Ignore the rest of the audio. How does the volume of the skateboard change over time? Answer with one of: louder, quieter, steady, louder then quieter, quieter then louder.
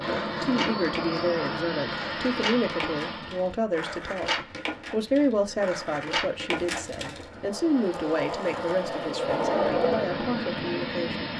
louder.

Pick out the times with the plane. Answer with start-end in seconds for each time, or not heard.
0.0-3.6, 7.3-11.3.